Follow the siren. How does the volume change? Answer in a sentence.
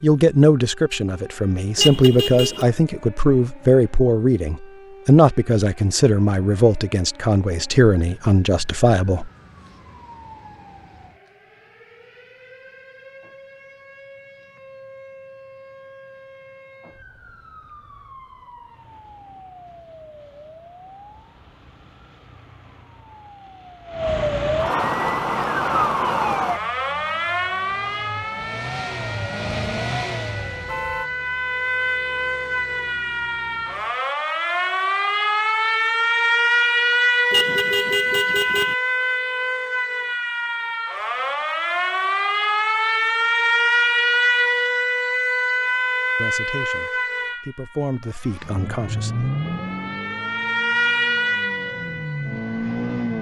The volume of the siren goes up.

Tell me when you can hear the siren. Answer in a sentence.
You can hear the siren from 0.1 to 53.1 s.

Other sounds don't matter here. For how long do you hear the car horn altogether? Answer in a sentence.
You can hear the car horn for 3 seconds altogether.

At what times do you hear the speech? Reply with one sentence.
The speech can be heard from 0.0 to 9.3 s and from 46.1 to 49.3 s.